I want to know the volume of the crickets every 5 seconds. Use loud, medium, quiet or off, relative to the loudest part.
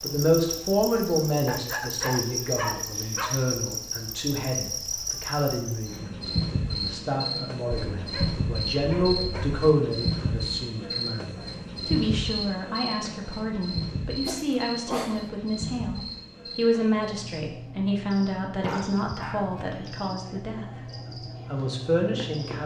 loud, loud, loud, medium, medium.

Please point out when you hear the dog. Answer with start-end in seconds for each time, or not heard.
1.4-3.5, 8.0-9.7, 14.2-15.3, 18.6-20.1.